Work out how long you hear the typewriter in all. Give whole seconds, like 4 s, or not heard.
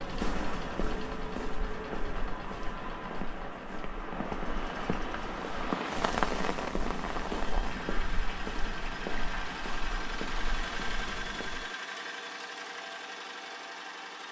not heard.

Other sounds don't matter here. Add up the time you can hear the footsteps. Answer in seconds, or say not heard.
12 s.